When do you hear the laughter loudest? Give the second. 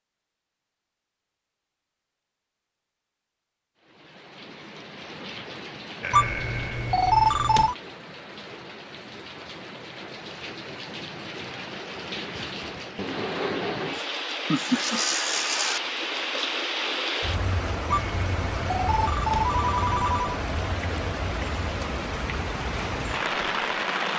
15 s.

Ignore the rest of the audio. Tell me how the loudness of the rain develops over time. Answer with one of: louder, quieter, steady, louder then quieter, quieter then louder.
louder.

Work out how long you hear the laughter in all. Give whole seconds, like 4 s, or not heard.
3 s.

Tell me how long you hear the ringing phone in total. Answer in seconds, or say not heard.
4 s.